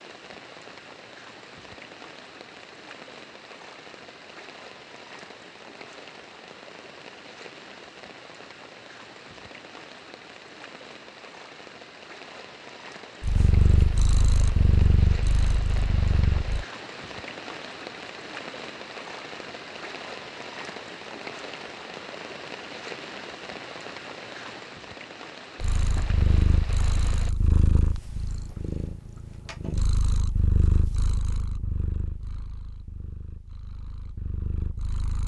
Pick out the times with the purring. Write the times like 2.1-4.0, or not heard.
13.2-16.6, 25.6-35.2.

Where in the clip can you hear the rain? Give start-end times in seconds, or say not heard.
0.0-27.3.